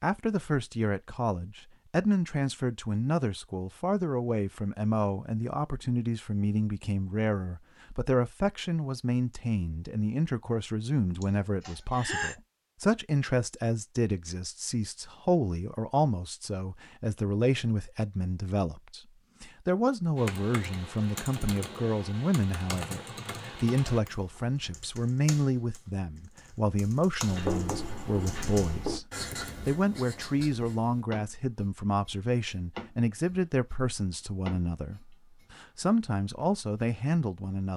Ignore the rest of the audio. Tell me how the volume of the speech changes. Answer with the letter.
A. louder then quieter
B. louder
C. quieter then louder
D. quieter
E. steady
E.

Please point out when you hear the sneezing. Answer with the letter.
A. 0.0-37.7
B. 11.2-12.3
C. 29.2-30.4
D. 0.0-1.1
B.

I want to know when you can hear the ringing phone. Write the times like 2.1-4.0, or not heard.
not heard.